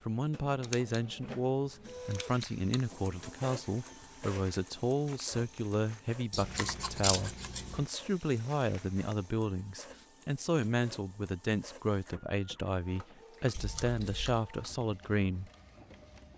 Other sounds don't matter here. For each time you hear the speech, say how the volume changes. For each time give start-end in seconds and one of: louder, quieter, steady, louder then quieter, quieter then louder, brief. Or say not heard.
0.1-15.5 steady.